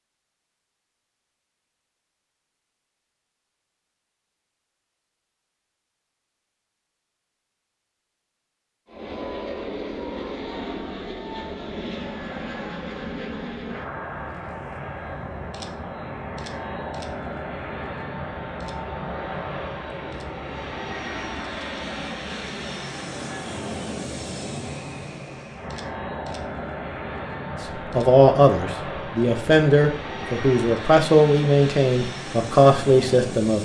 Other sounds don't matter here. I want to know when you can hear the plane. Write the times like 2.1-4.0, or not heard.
8.8-33.5.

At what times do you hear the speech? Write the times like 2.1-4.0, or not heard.
27.9-33.5.